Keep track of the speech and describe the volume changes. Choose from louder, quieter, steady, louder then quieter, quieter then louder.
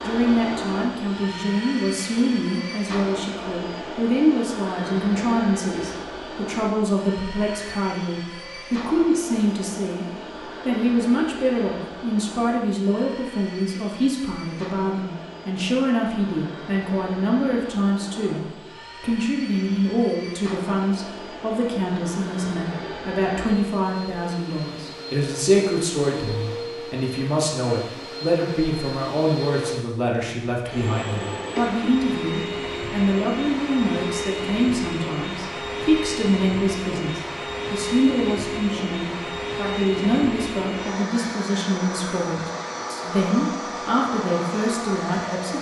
steady.